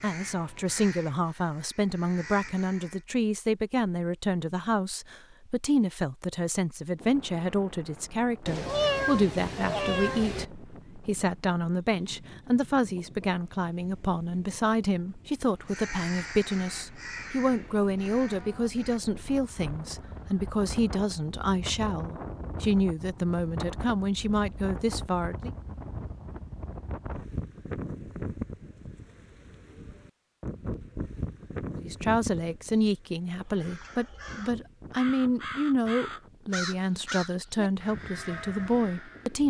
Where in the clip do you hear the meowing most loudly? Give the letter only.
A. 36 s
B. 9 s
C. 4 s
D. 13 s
B.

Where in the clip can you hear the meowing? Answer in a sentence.
The meowing can be heard from 8.4 to 10.4 s.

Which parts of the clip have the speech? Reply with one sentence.
You can hear the speech from 0.0 to 25.5 s and from 31.8 to 39.4 s.